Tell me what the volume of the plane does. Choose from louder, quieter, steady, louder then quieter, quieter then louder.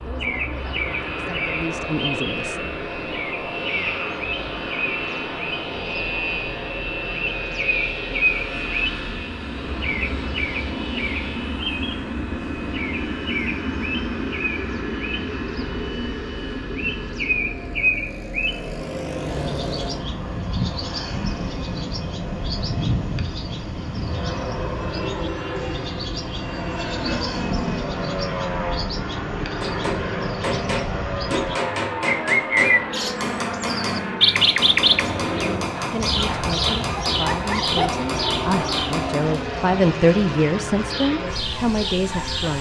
steady.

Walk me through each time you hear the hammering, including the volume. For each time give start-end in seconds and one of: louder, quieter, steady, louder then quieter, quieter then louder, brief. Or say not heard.
29.6-39.4 steady.